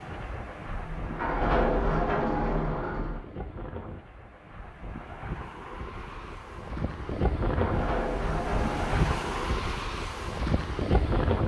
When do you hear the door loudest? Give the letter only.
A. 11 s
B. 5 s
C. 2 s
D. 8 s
C.